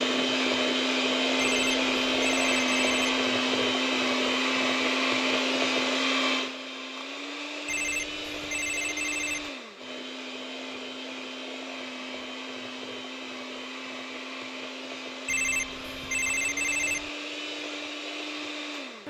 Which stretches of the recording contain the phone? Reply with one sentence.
You can hear the phone from 1.4 to 3.2 s, from 7.7 to 9.5 s and from 15.2 to 17.1 s.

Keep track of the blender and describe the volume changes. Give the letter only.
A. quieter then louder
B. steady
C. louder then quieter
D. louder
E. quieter
E.